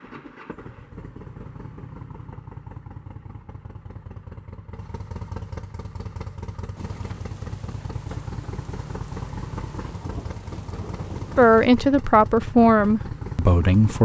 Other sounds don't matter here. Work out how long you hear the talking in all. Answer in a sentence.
The talking can be heard for 3 seconds in total.